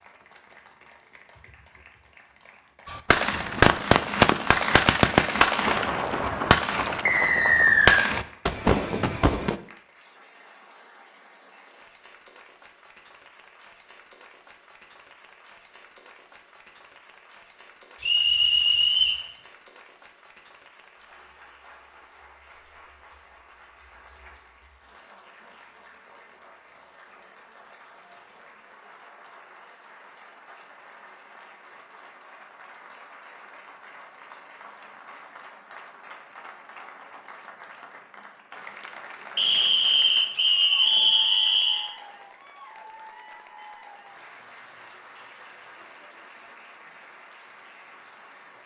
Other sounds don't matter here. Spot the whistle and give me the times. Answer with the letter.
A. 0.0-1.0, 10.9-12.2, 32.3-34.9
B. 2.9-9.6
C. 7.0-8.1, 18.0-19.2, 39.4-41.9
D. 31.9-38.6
C.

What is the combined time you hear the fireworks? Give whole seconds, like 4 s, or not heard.
7 s.